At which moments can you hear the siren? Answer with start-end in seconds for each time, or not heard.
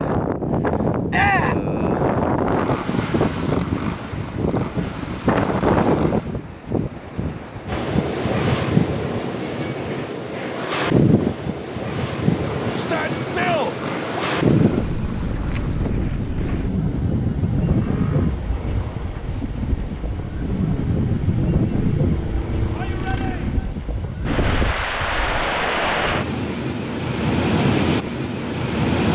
not heard.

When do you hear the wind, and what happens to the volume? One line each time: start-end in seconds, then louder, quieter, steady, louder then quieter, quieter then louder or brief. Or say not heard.
0.0-29.1 steady.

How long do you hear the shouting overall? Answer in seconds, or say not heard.
3 s.